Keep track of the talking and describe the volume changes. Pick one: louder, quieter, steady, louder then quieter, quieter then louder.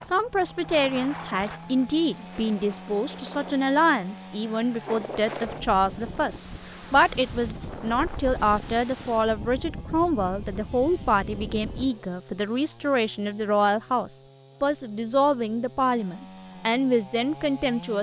steady.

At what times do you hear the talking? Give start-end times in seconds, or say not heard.
0.0-17.9.